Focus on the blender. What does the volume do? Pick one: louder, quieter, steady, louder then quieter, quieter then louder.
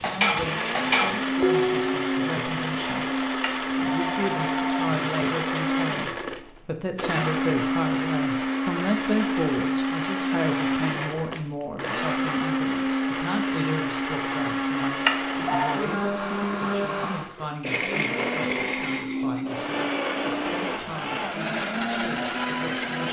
steady.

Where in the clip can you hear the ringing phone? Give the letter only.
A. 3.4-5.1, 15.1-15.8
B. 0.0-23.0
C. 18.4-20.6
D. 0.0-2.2
A.